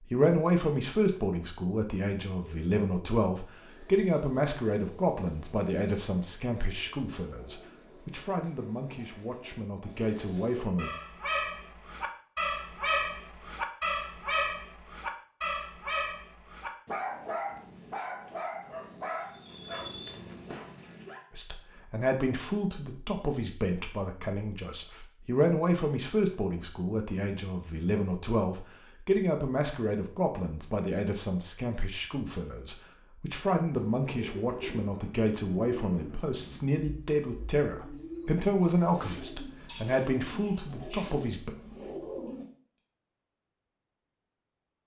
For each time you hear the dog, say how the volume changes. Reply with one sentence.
You can hear the dog from 10.8 to 21.2 s, getting quieter.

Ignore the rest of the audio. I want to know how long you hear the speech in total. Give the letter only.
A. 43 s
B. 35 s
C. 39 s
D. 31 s
D.